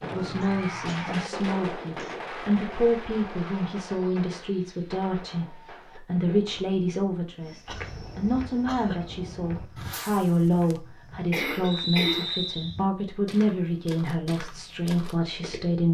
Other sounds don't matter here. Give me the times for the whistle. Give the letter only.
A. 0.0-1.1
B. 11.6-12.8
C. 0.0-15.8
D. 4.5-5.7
B.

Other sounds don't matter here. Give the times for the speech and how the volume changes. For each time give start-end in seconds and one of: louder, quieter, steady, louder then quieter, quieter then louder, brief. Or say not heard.
0.0-15.8 steady.